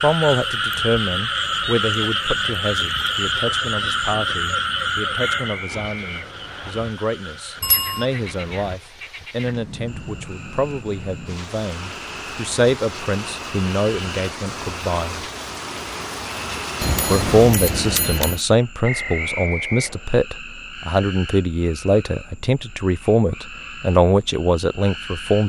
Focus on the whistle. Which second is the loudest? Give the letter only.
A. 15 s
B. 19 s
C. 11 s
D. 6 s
B.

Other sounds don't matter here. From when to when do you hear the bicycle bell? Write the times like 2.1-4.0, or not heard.
7.6-8.1, 16.8-18.4.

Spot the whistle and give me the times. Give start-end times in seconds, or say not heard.
5.2-6.8, 18.8-20.1.